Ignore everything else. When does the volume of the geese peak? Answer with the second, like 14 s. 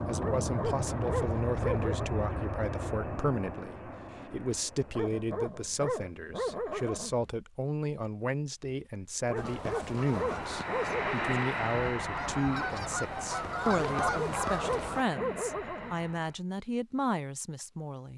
14 s.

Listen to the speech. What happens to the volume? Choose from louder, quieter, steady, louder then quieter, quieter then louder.
steady.